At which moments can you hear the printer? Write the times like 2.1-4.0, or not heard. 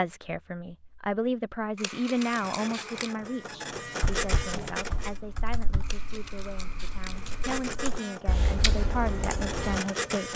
2.1-5.2, 7.2-10.3.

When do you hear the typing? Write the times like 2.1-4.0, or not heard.
4.0-9.8.